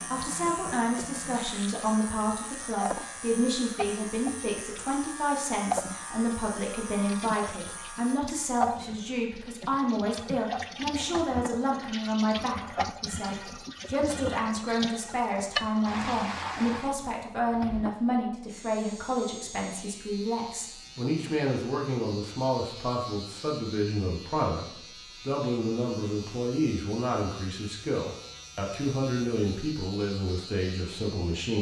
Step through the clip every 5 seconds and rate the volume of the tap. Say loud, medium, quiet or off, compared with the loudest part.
medium, loud, loud, loud, off, off, off.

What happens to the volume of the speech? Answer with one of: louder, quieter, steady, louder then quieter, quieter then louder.
steady.